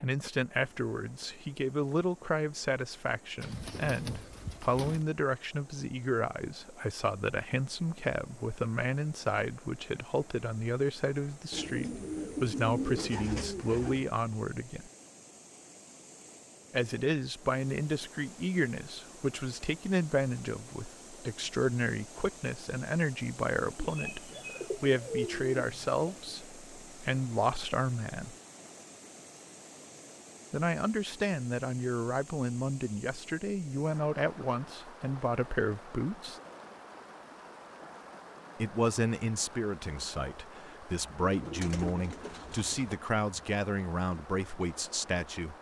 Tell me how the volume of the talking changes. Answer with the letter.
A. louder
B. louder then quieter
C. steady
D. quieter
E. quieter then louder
C.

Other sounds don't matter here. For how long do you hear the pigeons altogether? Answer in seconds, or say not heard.
9 s.